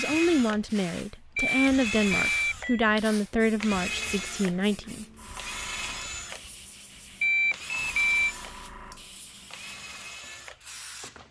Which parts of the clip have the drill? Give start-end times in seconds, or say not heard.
0.0-11.2.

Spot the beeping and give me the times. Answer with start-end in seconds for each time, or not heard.
1.4-2.9, 7.2-8.3.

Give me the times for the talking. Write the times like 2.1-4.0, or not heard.
0.0-5.0.